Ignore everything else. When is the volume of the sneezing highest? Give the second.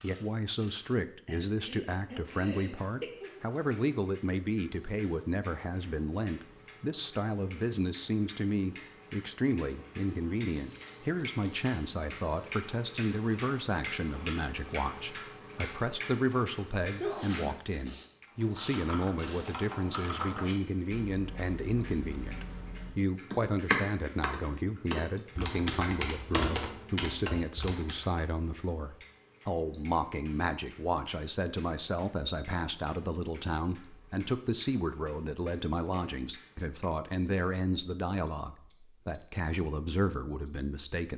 17 s.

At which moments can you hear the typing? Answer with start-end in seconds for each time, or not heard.
18.2-28.1.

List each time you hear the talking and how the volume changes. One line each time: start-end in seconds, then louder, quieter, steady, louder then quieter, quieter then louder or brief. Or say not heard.
0.0-41.1 steady.